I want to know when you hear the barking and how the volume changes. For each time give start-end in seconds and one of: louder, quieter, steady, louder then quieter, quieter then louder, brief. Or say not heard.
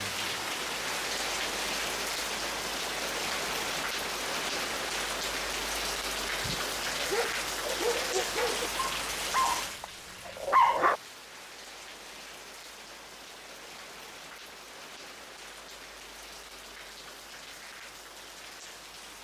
6.4-11.0 louder.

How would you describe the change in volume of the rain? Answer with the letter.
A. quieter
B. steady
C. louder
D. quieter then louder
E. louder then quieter
A.